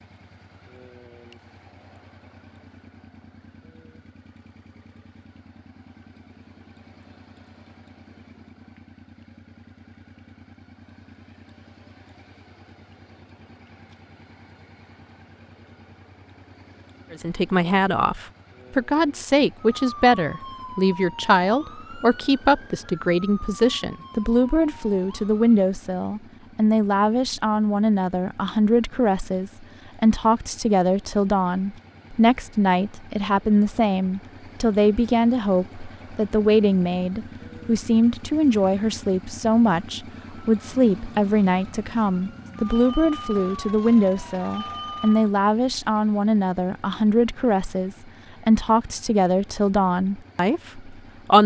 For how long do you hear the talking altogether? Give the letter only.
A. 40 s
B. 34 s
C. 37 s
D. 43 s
B.